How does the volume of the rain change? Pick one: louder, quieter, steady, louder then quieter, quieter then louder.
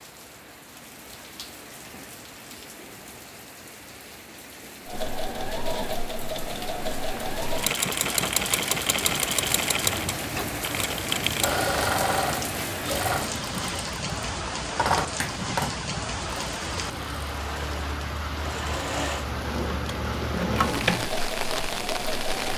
louder.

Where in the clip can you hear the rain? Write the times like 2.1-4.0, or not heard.
0.0-22.5.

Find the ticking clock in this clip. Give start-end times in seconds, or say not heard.
not heard.